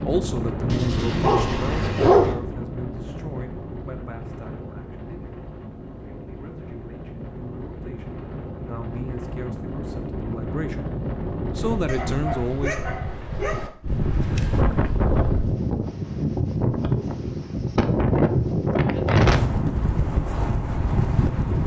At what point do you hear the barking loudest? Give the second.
2 s.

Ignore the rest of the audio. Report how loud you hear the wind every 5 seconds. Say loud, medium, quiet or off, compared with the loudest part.
medium, quiet, medium, loud, loud.